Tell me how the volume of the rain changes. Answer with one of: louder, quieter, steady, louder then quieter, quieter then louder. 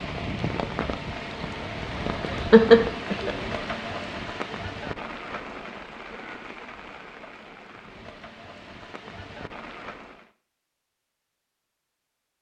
quieter.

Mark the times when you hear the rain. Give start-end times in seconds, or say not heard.
0.0-10.3.